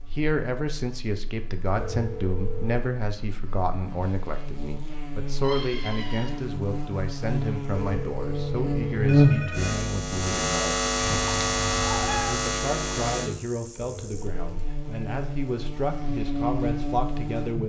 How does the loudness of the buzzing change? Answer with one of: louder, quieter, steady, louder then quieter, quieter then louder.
louder then quieter.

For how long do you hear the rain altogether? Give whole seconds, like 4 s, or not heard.
not heard.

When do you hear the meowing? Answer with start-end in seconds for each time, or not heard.
5.4-6.4, 11.2-12.4.